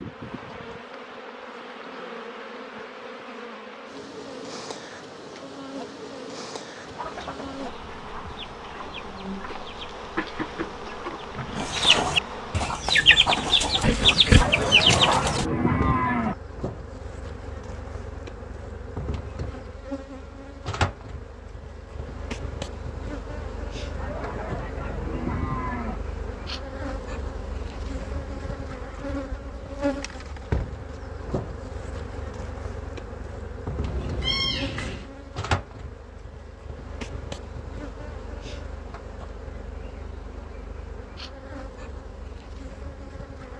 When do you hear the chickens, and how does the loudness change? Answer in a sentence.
You can hear the chickens from 6.8 to 15.4 s, getting louder.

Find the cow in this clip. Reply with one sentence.
The cow can be heard from 14.3 to 16.4 s and from 23.9 to 26.0 s.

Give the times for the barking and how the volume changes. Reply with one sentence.
The barking can't be heard in this clip.